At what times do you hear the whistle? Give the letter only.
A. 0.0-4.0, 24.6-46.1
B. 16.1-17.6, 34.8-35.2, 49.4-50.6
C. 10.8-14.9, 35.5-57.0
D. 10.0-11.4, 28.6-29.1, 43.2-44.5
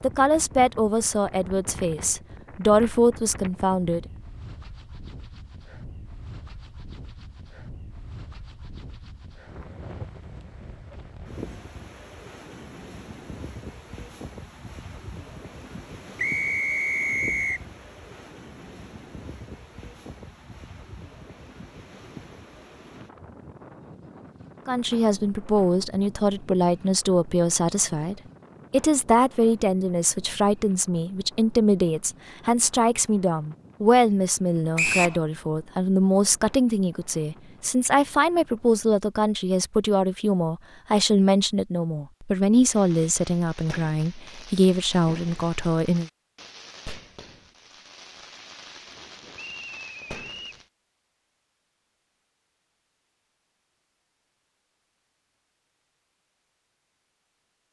B.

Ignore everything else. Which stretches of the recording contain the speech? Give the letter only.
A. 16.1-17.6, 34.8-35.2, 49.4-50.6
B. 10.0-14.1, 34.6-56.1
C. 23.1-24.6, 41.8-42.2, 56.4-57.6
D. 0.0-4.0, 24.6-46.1
D.